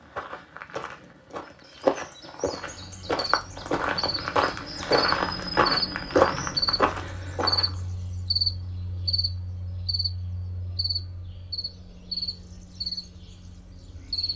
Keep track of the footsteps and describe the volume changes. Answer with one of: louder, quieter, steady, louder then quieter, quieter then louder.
louder.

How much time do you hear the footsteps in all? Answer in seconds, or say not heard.
8 s.